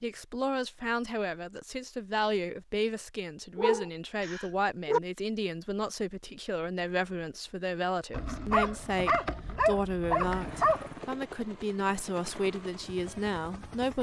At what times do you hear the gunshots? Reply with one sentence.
You can't hear the gunshots here.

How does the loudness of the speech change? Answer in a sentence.
The loudness of the speech stays about the same.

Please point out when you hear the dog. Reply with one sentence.
You can hear the dog from 3.5 to 5.0 s and from 8.1 to 10.9 s.